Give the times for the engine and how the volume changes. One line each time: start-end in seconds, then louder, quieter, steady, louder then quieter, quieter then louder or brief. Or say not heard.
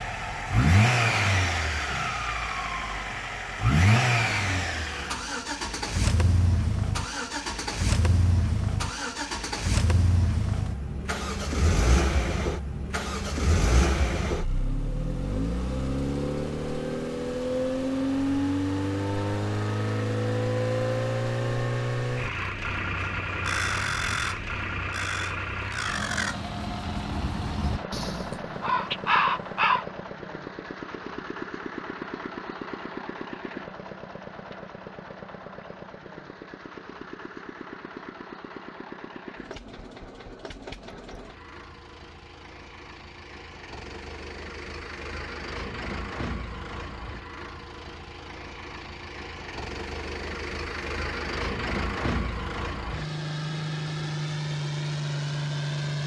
0.0-56.0 quieter then louder.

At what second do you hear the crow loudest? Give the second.
29 s.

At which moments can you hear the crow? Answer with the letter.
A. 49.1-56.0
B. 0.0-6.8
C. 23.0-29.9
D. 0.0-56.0
C.